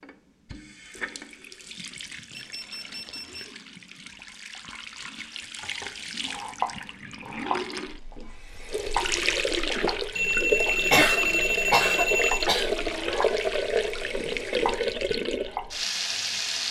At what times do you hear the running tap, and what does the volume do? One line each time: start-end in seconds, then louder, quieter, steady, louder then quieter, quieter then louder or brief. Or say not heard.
0.0-16.6 louder.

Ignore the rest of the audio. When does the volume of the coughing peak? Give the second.
11 s.